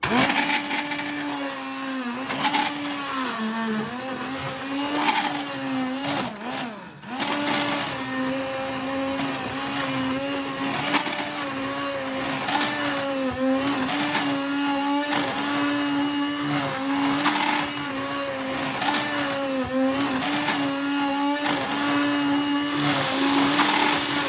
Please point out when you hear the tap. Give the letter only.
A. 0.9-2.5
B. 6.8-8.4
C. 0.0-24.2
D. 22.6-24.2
D.